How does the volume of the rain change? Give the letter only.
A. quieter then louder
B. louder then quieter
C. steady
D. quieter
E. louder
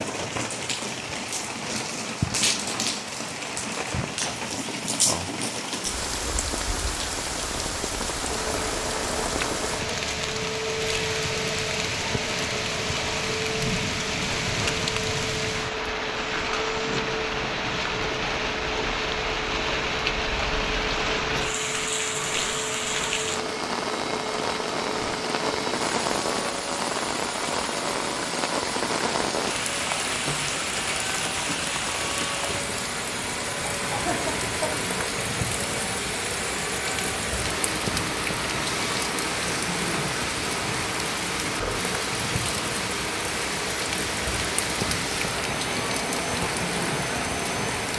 C.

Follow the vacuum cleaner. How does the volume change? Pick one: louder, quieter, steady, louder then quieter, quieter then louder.
steady.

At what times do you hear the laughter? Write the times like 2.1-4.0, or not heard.
34.0-34.7.